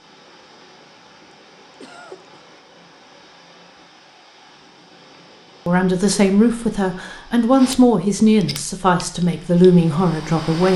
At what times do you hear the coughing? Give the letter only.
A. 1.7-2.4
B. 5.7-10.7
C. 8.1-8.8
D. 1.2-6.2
A.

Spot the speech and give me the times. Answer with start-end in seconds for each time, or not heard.
5.7-10.7.